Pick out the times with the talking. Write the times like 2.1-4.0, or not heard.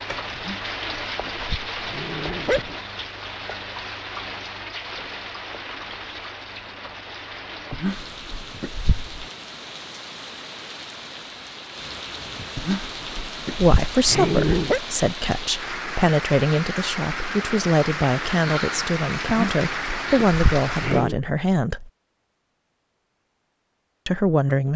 13.6-21.9, 24.1-24.7.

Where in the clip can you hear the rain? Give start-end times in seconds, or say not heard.
0.0-21.1.